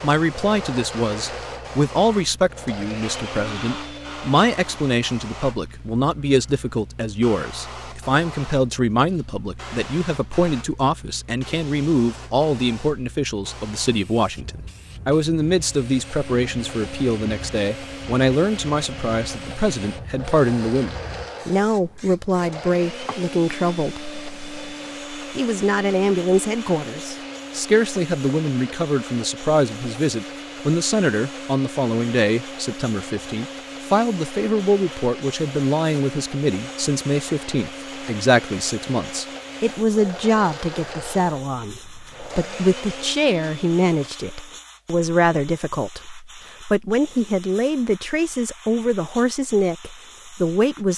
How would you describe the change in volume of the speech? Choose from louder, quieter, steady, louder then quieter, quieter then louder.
steady.